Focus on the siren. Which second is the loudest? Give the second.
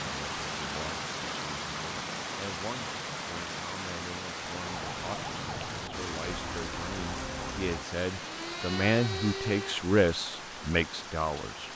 9 s.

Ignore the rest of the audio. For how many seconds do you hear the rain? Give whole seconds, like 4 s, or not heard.
12 s.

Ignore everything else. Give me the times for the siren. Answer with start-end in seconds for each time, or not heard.
4.6-9.8.